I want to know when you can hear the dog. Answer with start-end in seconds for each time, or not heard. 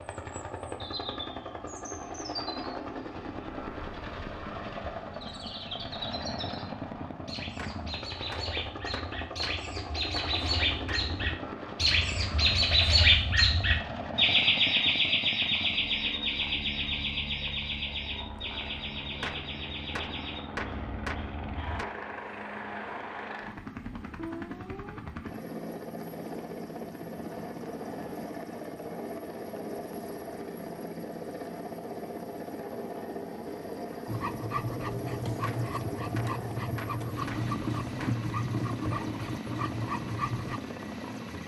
34.0-40.6.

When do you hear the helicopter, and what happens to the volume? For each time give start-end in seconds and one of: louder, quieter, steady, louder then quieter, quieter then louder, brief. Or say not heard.
0.0-41.4 steady.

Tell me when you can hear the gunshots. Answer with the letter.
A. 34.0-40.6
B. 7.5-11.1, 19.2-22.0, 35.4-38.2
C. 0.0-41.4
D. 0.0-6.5
B.